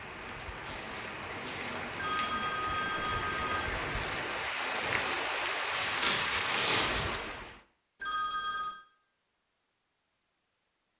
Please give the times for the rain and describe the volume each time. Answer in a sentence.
You can hear the rain from 0.0 to 7.7 s, getting louder.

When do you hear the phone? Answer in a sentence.
The phone can be heard from 1.9 to 3.7 s and from 8.0 to 8.8 s.